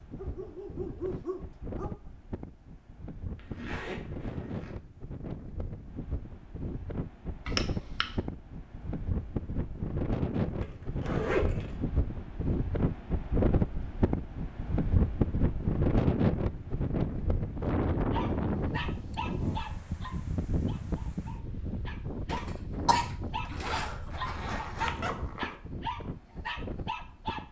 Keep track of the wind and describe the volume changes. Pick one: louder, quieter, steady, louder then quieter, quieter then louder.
louder then quieter.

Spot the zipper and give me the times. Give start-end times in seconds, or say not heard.
3.4-4.7, 10.6-11.8, 23.6-25.6.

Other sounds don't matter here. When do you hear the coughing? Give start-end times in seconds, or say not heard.
7.5-8.1, 22.2-24.0.